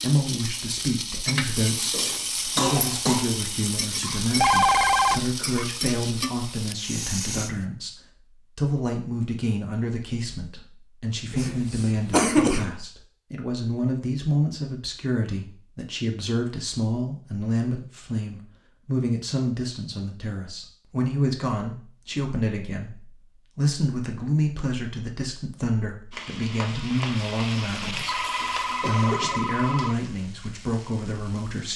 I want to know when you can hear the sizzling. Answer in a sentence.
You can hear the sizzling from 0.0 to 7.7 s and from 26.1 to 31.7 s.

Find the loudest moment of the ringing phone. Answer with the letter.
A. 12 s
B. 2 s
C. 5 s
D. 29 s
C.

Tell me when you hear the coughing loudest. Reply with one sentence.
The loudest moment of the coughing is at 12 seconds.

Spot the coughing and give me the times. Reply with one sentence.
You can hear the coughing from 1.9 to 3.3 s, from 11.3 to 12.7 s and from 28.8 to 29.5 s.